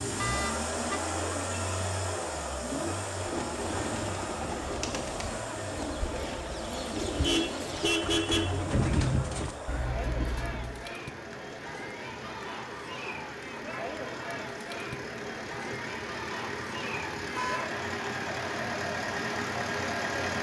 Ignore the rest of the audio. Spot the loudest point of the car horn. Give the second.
8 s.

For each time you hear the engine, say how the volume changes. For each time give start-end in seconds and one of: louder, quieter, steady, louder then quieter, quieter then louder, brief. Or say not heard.
0.0-20.3 quieter then louder.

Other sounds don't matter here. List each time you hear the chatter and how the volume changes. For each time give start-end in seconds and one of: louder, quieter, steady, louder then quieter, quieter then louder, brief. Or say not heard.
0.2-20.3 steady.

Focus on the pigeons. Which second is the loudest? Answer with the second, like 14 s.
9 s.